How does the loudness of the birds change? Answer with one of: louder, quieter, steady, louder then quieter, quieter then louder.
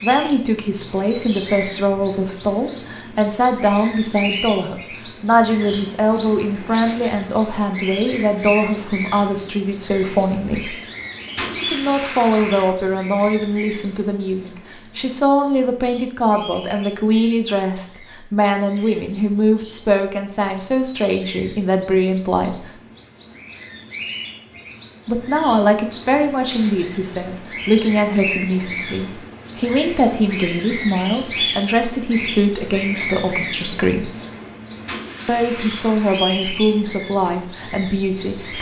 quieter then louder.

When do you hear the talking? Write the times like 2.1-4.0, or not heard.
0.0-10.8, 11.6-22.7, 25.1-34.1, 35.2-38.5.